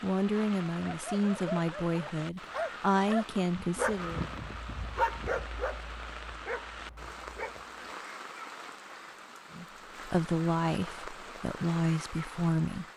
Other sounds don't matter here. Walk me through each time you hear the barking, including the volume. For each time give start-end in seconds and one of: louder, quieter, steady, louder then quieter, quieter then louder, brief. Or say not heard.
0.7-7.7 louder then quieter.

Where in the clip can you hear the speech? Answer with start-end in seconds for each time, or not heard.
0.0-4.2, 9.6-12.8.